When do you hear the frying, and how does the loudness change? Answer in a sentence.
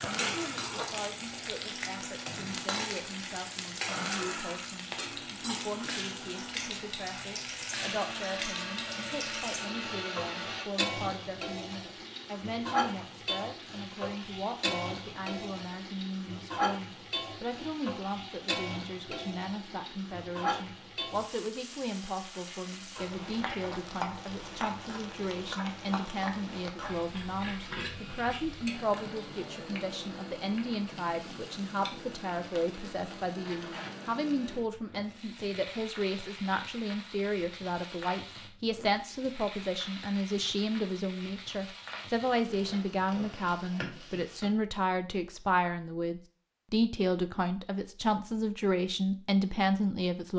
You can hear the frying from 0.0 to 44.5 s, getting quieter.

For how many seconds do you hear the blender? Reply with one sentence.
You can hear the blender for 11 seconds altogether.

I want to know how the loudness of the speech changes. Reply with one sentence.
The loudness of the speech goes up.